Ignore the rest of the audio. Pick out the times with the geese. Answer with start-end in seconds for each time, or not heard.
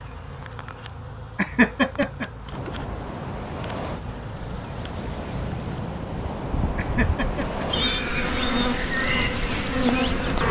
not heard.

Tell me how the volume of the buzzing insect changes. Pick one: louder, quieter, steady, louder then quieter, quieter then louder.
louder.